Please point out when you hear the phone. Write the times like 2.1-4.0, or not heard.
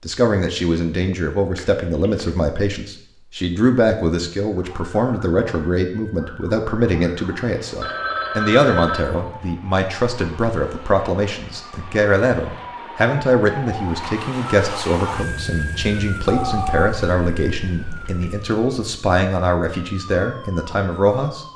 1.6-2.3, 7.8-9.0, 16.2-18.3.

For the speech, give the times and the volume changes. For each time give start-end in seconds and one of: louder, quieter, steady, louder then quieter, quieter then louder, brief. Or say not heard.
0.0-21.4 steady.